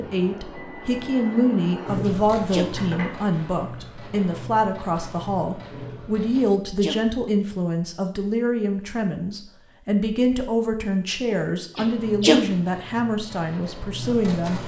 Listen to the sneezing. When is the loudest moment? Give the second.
12 s.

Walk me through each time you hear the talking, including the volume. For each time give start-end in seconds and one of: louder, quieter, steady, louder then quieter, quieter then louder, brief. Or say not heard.
0.0-14.6 steady.